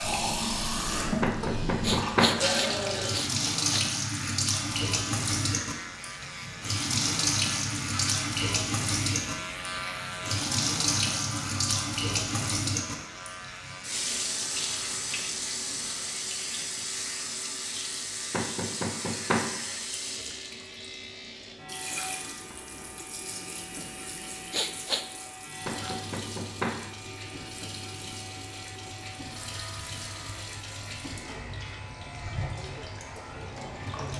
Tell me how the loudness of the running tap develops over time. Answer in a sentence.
The loudness of the running tap goes down.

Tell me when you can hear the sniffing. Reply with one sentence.
You can hear the sniffing from 1.8 to 3.9 s and from 24.5 to 25.1 s.